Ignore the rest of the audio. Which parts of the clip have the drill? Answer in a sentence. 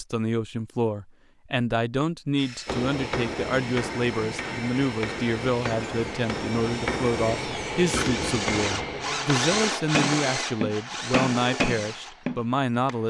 The drill can be heard from 2.4 to 13.0 s.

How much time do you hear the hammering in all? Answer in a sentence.
You can hear the hammering for 10 seconds altogether.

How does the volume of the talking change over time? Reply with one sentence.
The loudness of the talking stays about the same.